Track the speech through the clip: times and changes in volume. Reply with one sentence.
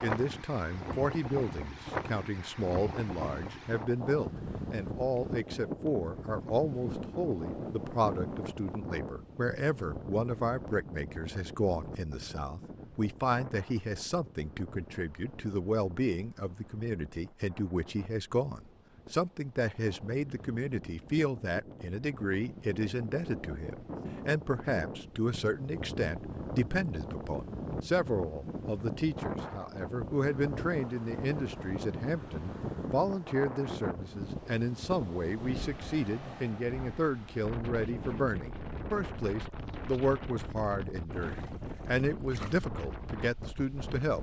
You can hear the speech from 0.0 to 44.1 s, at a steady volume.